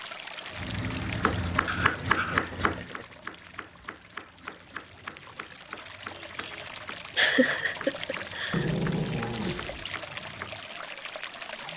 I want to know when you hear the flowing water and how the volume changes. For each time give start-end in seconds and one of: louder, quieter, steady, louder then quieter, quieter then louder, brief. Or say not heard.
0.0-11.7 quieter then louder.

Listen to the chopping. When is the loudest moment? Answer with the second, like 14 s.
2 s.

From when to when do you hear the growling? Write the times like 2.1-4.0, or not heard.
1.6-2.4, 8.5-9.8.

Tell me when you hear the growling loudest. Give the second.
9 s.